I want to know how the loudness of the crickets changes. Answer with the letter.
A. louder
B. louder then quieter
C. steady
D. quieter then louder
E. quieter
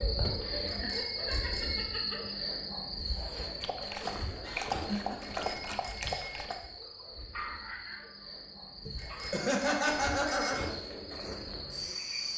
D.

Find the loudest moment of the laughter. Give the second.
10 s.